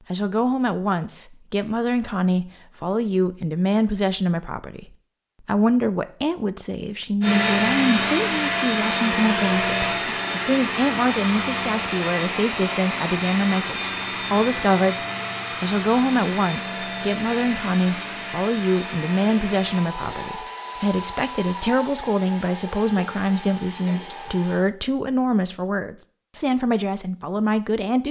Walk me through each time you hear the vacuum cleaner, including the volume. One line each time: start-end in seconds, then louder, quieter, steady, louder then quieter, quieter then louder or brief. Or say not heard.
7.2-24.6 quieter.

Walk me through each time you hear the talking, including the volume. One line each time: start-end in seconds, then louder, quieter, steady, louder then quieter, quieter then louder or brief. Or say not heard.
0.1-28.0 steady.